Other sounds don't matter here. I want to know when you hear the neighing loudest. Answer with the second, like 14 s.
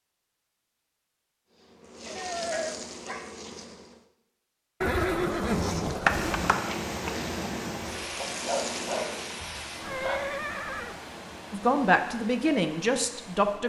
5 s.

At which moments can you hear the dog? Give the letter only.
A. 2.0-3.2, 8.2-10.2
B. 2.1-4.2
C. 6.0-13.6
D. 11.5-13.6
A.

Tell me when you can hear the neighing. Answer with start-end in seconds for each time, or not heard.
2.1-2.8, 4.8-6.5, 9.8-11.0.